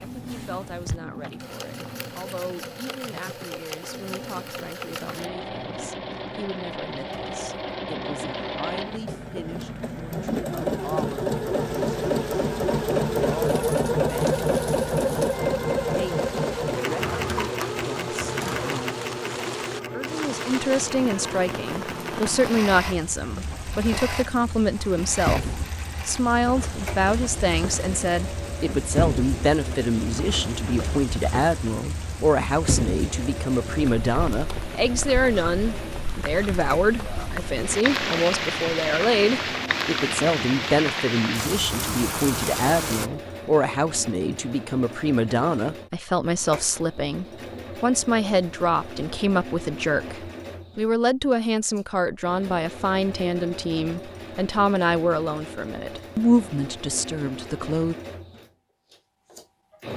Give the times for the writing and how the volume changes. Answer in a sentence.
You can't hear the writing here.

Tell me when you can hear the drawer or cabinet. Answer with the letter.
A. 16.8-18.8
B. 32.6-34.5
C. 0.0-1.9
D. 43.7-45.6
A.